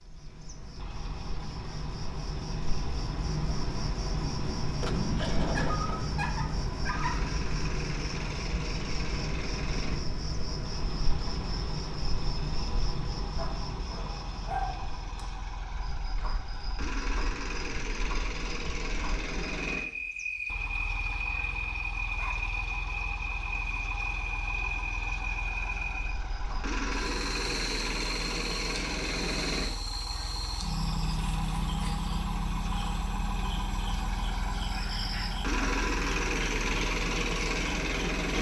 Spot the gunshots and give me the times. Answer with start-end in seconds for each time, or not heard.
4.6-6.1.